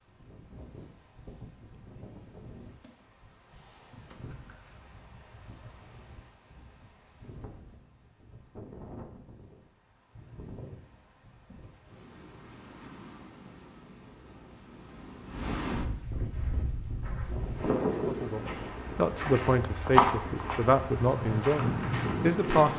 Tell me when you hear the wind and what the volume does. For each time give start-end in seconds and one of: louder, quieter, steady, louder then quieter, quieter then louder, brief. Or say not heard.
0.0-22.7 louder.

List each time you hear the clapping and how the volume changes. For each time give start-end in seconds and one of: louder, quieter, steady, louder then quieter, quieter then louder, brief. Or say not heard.
not heard.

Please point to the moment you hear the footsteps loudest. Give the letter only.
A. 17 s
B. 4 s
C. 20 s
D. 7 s
C.